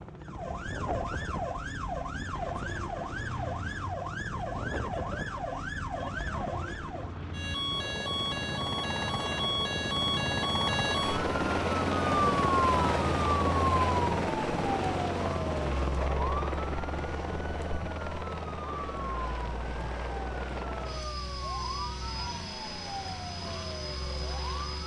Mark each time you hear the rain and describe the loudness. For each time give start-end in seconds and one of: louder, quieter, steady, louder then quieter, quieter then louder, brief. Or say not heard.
not heard.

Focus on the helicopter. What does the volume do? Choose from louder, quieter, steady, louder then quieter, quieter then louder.
louder then quieter.